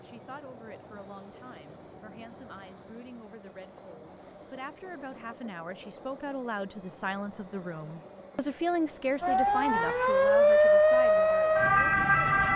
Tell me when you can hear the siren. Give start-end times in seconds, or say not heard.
9.2-12.5.